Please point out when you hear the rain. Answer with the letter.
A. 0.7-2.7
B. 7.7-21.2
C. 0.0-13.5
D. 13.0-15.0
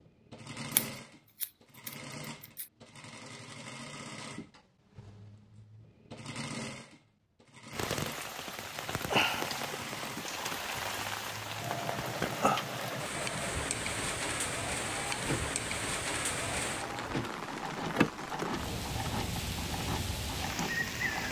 B.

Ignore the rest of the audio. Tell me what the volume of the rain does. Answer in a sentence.
The volume of the rain stays about the same.